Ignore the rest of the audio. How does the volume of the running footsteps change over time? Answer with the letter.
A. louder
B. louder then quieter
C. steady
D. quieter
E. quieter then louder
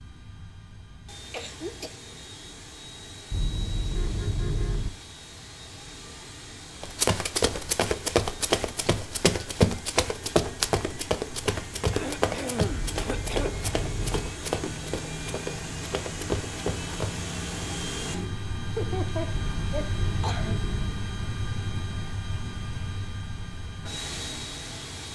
D.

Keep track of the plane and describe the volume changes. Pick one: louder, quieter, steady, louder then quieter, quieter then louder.
louder.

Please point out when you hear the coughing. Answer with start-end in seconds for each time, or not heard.
1.3-1.9, 11.9-13.5, 18.8-20.6.